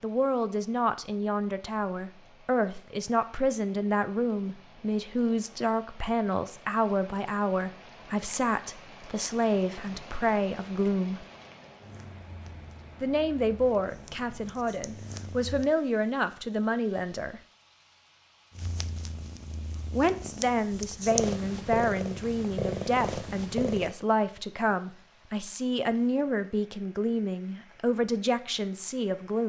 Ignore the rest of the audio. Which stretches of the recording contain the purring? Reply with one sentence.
You can hear the purring from 11.8 to 15.7 s and from 18.5 to 23.9 s.